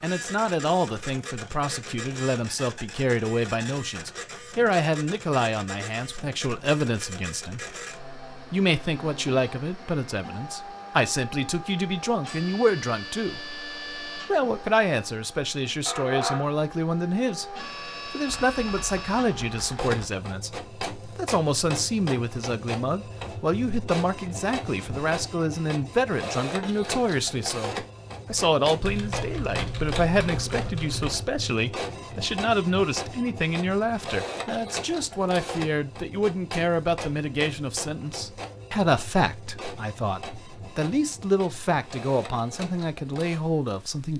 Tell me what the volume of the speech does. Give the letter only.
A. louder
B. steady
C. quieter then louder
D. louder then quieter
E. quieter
B.